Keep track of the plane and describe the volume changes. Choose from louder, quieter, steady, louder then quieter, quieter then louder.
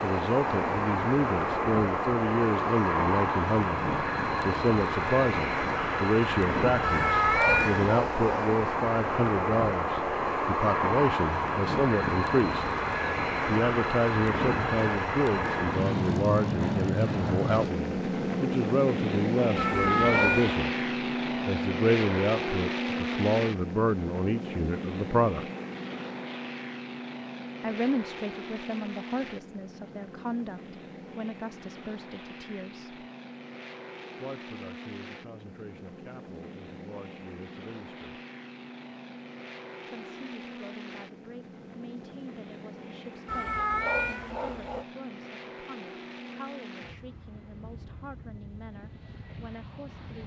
quieter.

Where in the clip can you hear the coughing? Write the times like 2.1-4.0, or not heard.
not heard.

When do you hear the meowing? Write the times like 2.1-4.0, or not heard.
6.8-8.6, 19.6-20.6, 43.2-44.9.